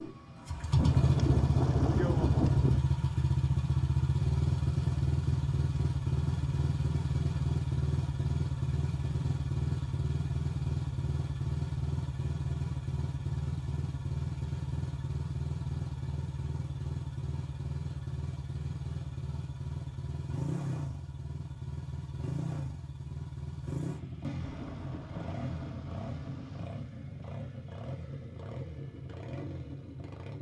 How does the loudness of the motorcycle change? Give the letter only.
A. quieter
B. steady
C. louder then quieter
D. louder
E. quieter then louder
A.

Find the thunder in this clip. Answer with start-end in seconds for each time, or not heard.
0.8-2.8, 24.2-26.7.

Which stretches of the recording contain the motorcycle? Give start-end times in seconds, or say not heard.
0.0-30.3.